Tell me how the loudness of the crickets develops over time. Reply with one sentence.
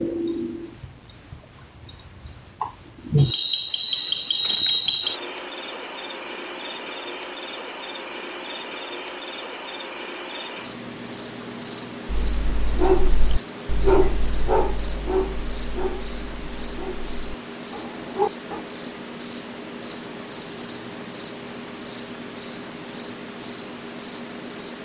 The loudness of the crickets stays about the same.